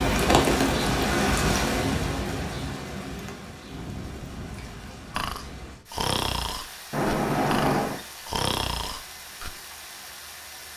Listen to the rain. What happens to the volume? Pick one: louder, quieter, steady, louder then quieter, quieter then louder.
quieter.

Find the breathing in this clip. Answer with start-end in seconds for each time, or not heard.
3.7-9.5.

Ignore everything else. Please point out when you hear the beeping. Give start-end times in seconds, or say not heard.
6.9-8.1.